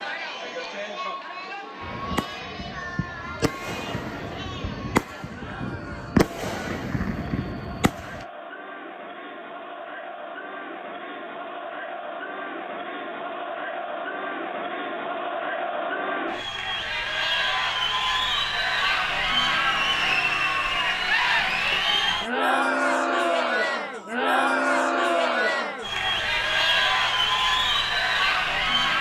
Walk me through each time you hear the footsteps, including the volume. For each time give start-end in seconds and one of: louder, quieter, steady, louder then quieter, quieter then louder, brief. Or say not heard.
not heard.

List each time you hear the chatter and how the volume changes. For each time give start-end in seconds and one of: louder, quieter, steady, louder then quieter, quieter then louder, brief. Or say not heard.
0.0-28.9 louder.